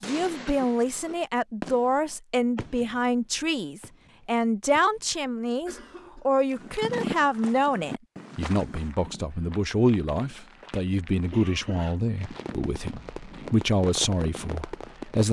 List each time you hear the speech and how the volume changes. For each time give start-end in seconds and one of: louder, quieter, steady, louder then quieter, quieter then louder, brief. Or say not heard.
0.0-15.2 steady.